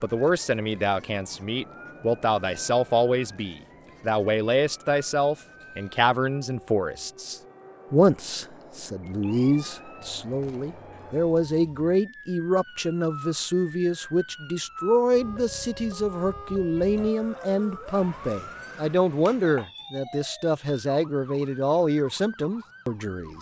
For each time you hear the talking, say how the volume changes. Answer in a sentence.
The talking can be heard from 0.0 to 23.3 s, at a steady volume.